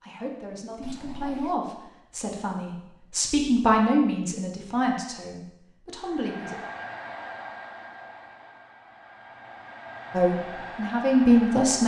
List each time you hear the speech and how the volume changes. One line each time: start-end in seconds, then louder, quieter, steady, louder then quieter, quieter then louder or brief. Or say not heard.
0.0-6.6 louder then quieter
10.1-11.8 brief.